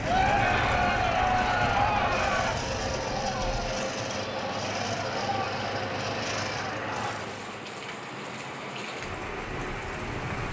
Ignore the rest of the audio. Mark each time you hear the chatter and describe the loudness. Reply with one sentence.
You can hear the chatter from 0.0 to 7.2 s, getting quieter.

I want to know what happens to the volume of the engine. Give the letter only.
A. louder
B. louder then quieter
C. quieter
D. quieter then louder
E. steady
E.